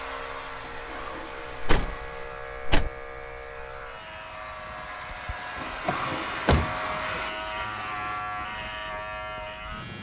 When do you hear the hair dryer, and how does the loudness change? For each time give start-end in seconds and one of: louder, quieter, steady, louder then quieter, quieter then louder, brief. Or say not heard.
0.0-7.3 quieter then louder.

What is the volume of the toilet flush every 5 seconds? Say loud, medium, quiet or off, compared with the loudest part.
medium, loud.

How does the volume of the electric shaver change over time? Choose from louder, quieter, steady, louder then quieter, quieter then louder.
louder.